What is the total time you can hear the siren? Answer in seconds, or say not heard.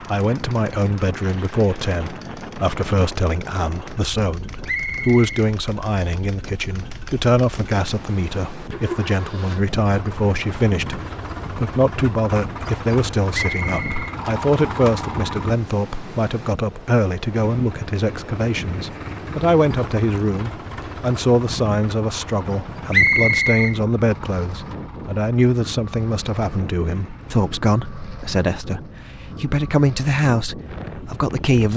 not heard.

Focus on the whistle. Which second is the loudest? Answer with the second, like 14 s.
23 s.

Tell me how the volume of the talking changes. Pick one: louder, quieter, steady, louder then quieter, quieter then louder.
steady.